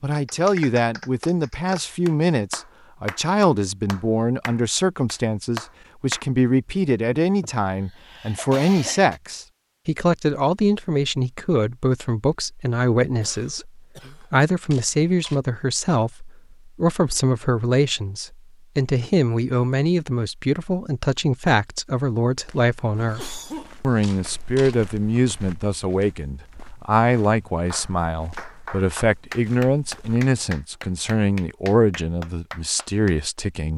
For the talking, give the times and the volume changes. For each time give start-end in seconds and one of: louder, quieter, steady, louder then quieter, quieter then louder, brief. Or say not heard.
0.0-33.7 steady.